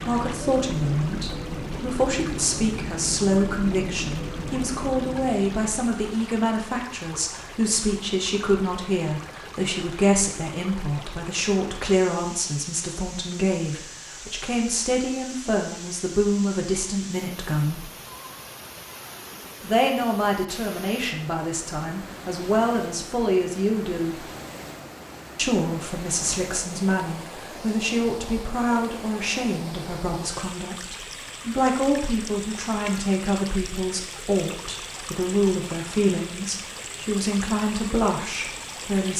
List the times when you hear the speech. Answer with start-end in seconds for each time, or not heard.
0.0-17.9, 19.6-24.2, 25.4-39.1.